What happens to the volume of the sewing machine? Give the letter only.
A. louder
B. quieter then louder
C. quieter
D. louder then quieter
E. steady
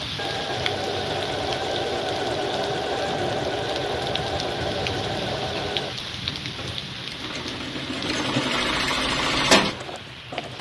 B.